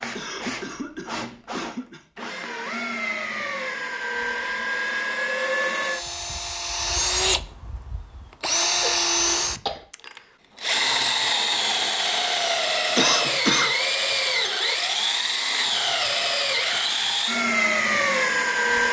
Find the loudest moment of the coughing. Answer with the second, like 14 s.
13 s.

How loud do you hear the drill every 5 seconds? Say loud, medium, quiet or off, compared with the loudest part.
medium, loud, loud, loud.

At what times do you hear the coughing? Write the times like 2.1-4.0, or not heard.
0.1-2.0, 8.8-9.8, 12.9-13.7.